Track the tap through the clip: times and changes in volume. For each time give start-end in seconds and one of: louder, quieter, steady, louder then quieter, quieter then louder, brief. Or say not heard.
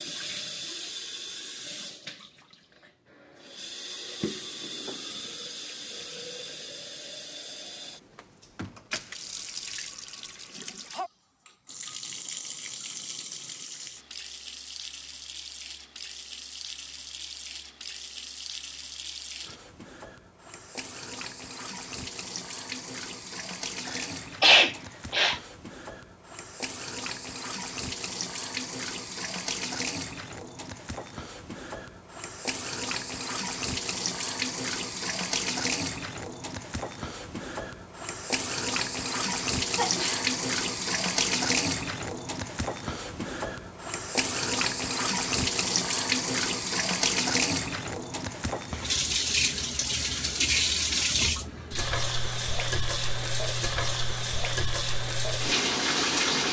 0.0-56.4 louder.